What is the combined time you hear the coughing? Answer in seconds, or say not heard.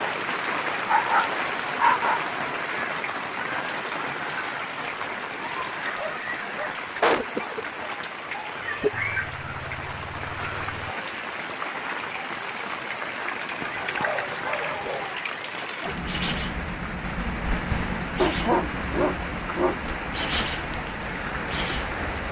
2 s.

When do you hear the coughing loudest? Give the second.
7 s.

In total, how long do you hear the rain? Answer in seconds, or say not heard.
22 s.